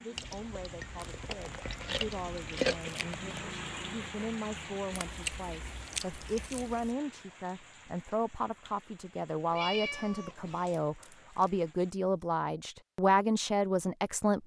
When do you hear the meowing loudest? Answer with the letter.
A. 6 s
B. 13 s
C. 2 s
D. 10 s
D.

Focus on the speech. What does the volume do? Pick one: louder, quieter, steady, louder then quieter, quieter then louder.
louder.